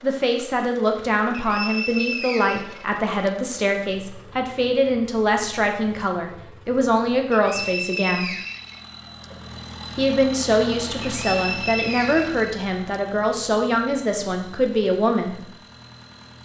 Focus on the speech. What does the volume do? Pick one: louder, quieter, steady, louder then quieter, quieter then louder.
steady.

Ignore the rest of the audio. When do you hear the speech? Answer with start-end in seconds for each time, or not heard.
0.0-8.3, 9.9-15.4.